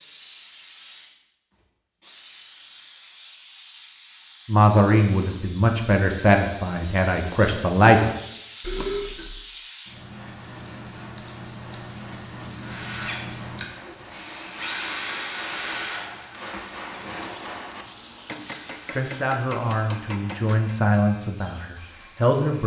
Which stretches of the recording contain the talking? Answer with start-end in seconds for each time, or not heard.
4.5-8.1, 18.9-22.6.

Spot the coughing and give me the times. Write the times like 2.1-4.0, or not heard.
8.6-9.3.